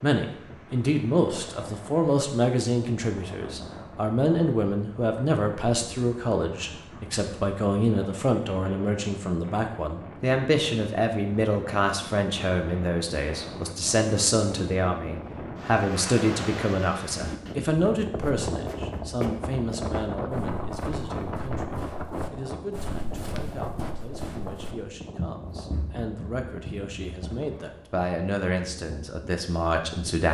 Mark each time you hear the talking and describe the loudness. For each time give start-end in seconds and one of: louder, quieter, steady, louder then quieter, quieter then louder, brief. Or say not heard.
0.0-30.2 quieter.